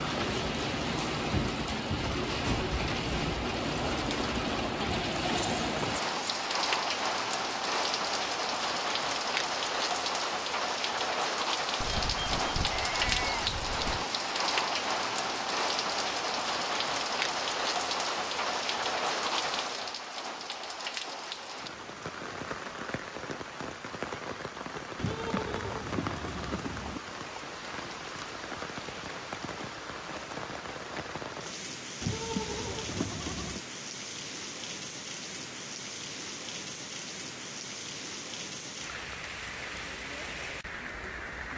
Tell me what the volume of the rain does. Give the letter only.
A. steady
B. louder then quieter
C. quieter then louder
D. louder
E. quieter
E.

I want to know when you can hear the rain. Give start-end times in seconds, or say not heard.
0.0-41.5.